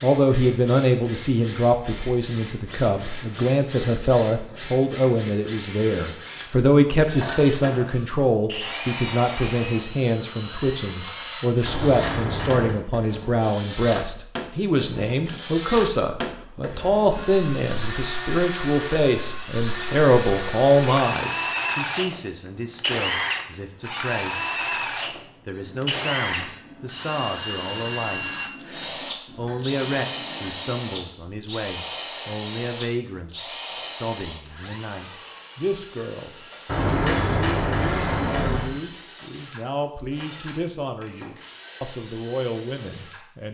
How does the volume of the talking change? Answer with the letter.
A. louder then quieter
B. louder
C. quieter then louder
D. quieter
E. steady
D.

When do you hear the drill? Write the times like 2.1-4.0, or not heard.
0.0-43.2.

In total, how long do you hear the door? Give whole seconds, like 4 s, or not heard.
3 s.